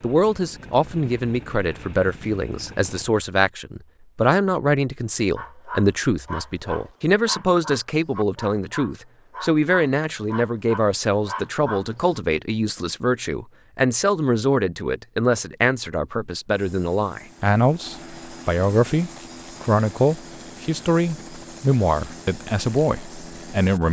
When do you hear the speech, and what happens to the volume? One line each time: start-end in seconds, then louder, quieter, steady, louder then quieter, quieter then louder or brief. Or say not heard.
0.0-23.8 steady.